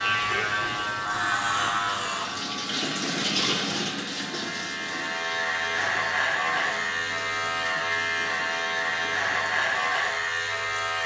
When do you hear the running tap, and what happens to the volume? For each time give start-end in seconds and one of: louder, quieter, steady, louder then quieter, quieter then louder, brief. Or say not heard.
0.0-11.0 louder then quieter.